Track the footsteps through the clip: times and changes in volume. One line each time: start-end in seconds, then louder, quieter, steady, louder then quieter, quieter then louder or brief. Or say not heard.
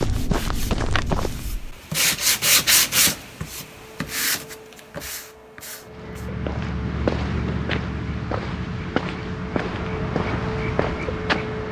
0.0-1.8 brief
5.8-11.6 steady.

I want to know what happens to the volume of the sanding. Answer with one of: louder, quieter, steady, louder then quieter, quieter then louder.
louder then quieter.